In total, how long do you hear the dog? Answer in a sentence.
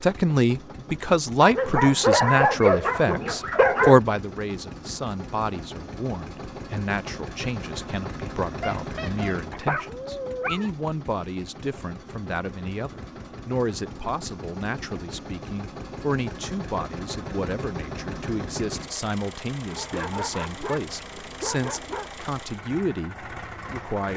You can hear the dog for 7 seconds altogether.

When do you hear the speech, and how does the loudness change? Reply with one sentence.
You can hear the speech from 0.0 to 24.1 s, getting quieter.